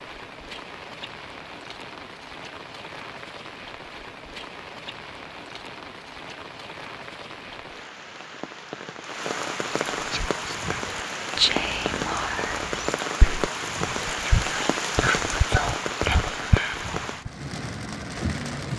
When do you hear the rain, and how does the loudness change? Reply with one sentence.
The rain can be heard from 0.0 to 18.7 s, getting louder.